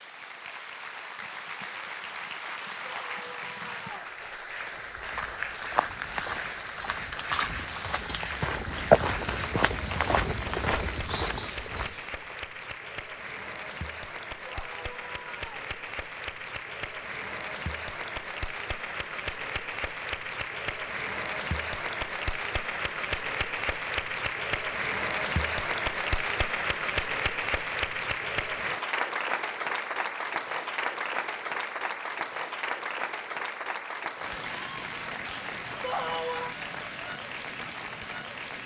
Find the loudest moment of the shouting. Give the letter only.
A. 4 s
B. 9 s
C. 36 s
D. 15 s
C.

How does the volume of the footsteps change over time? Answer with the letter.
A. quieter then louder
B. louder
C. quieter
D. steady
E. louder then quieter
E.